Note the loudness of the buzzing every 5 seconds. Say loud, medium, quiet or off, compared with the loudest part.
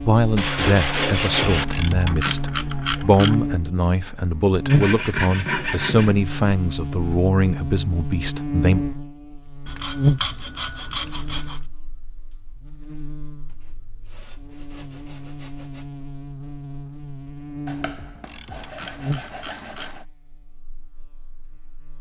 loud, loud, loud, medium, quiet.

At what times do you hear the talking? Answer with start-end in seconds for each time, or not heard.
0.0-8.8.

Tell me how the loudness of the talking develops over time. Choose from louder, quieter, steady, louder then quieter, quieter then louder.
steady.